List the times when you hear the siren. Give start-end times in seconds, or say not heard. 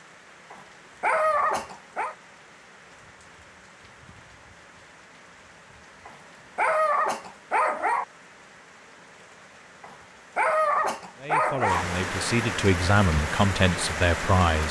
not heard.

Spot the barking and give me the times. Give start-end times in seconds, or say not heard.
0.5-2.1, 6.0-8.1, 9.8-11.8.